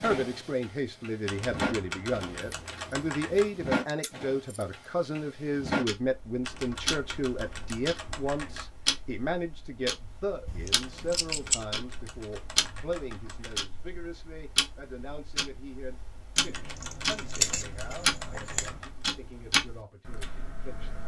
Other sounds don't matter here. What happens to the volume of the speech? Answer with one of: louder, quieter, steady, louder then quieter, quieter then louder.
quieter.